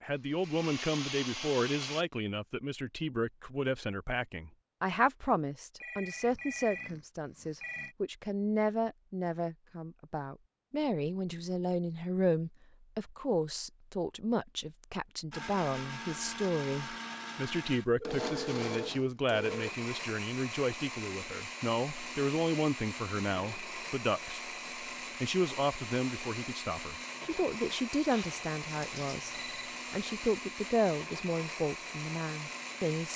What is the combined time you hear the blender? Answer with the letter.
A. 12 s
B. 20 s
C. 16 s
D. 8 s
B.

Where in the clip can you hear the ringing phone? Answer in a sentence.
You can hear the ringing phone from 5.8 to 8.0 s, from 18.0 to 19.7 s and from 28.1 to 29.8 s.